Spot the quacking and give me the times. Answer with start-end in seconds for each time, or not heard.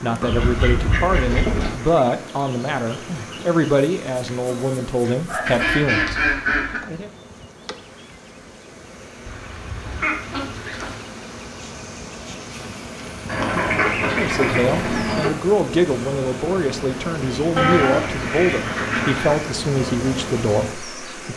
0.2-1.8, 5.2-6.8, 9.2-11.1, 13.2-15.3, 17.6-19.5.